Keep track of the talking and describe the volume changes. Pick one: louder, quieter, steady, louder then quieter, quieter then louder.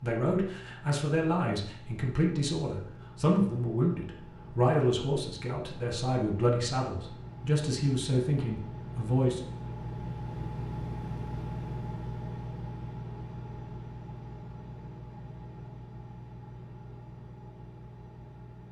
steady.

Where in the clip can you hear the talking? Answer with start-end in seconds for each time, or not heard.
0.0-9.4.